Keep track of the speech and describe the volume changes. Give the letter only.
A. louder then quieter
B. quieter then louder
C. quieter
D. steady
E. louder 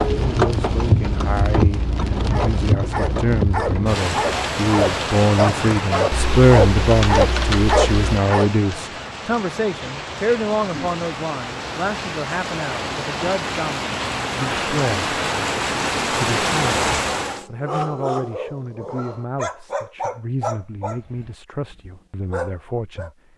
A.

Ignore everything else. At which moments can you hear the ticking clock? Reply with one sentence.
You can't hear the ticking clock here.